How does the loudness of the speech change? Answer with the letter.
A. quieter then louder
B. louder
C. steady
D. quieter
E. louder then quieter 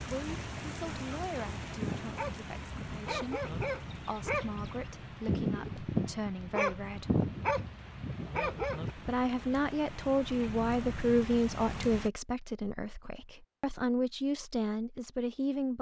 B.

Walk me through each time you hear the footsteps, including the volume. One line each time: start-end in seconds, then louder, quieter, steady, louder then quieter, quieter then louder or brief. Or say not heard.
not heard.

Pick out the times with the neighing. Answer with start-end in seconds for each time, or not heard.
not heard.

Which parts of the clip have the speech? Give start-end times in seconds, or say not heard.
0.0-7.2, 8.9-15.7.